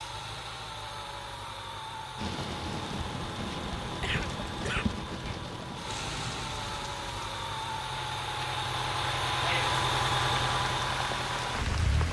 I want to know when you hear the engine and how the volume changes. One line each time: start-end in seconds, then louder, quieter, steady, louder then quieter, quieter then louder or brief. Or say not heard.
0.0-12.0 louder.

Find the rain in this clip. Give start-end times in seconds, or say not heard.
2.1-12.0.